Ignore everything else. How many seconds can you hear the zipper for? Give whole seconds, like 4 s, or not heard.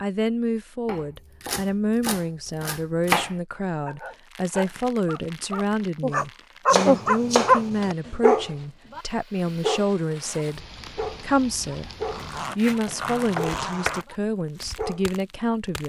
2 s.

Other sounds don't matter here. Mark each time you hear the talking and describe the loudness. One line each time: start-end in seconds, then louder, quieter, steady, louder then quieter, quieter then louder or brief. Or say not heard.
0.0-15.8 steady.